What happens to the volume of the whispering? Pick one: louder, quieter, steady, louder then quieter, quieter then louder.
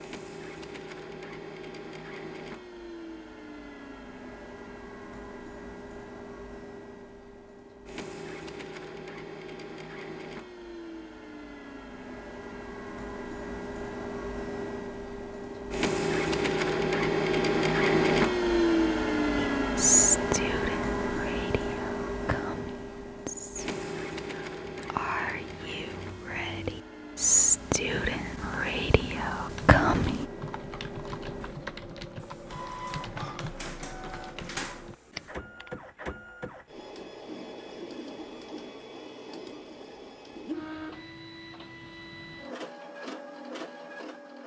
quieter then louder.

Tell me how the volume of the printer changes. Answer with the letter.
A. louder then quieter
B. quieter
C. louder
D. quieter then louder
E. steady
A.